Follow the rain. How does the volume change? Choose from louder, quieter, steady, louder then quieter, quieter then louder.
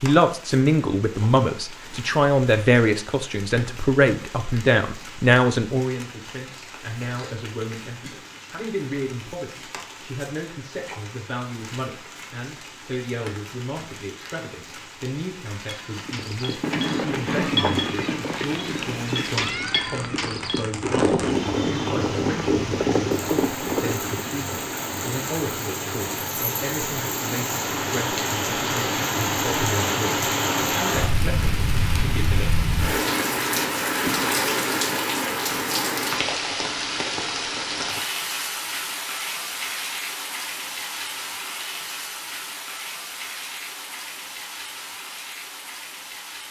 louder then quieter.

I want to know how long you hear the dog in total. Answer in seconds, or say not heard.
not heard.